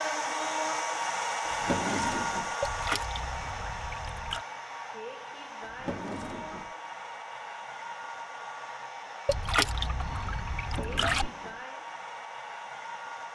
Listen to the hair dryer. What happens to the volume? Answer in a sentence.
The loudness of the hair dryer goes down.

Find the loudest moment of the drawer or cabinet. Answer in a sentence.
The loudest moment of the drawer or cabinet is at 2 seconds.